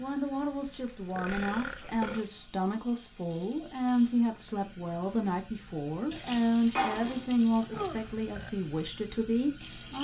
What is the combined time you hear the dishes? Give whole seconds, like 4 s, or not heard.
2 s.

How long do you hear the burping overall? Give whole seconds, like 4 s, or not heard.
2 s.